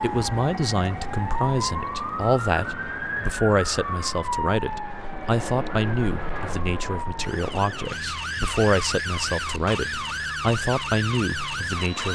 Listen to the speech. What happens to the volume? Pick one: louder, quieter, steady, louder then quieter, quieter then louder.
steady.